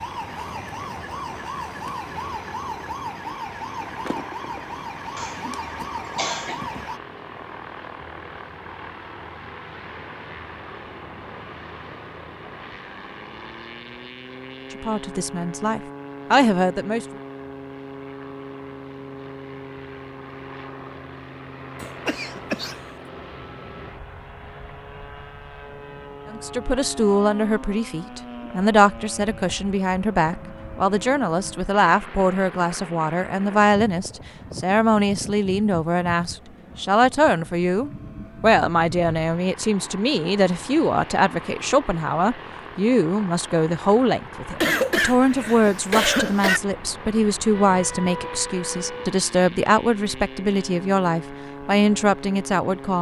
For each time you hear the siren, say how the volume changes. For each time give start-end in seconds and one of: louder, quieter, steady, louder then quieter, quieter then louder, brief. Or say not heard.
0.0-7.0 steady
47.5-49.1 brief.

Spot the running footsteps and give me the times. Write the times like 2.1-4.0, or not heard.
not heard.